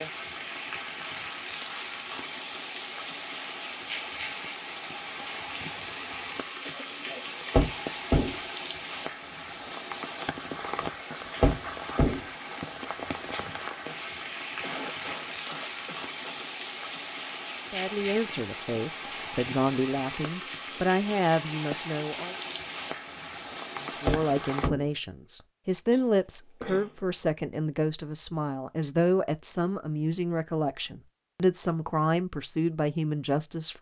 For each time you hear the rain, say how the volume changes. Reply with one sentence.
The rain can be heard from 0.0 to 24.7 s, at a steady volume.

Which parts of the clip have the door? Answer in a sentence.
You can hear the door from 7.5 to 8.3 s, from 11.4 to 12.2 s and from 24.1 to 24.9 s.